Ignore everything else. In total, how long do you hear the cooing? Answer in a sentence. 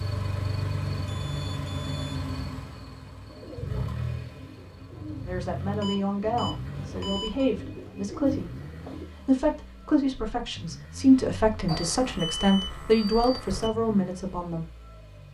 The cooing can be heard for 6 seconds in total.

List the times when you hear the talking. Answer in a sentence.
The talking can be heard from 5.2 to 14.7 s.